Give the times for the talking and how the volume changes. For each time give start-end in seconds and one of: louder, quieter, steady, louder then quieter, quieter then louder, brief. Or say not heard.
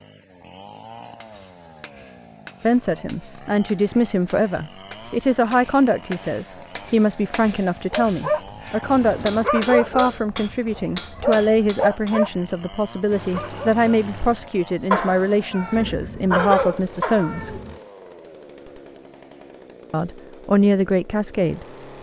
2.6-17.6 steady
19.9-21.6 brief.